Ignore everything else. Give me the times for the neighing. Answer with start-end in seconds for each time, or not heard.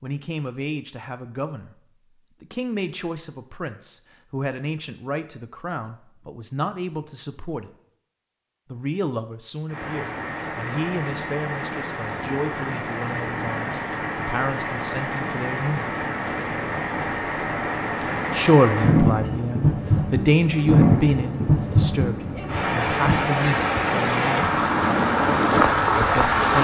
not heard.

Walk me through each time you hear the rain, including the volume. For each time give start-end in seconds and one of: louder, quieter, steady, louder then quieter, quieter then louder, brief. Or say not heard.
9.7-26.5 louder.